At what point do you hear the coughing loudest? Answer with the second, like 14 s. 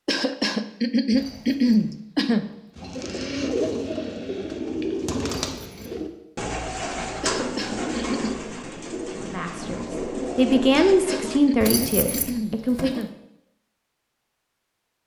2 s.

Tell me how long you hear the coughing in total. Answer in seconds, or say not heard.
6 s.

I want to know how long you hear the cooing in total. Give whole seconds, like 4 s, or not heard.
9 s.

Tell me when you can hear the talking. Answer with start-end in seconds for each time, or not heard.
9.2-13.1.